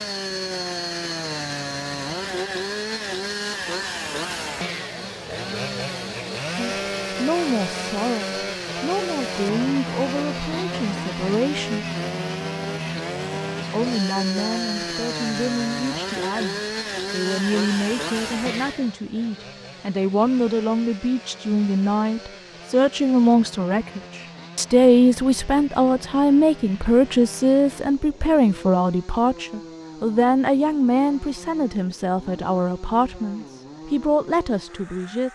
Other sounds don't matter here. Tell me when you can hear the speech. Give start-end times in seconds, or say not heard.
6.5-11.8, 13.7-35.3.